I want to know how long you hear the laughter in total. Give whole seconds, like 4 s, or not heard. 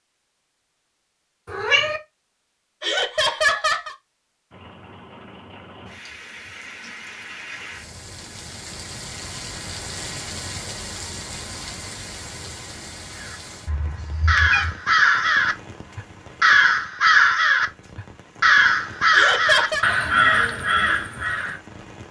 2 s.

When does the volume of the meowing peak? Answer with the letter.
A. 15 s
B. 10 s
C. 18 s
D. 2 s
D.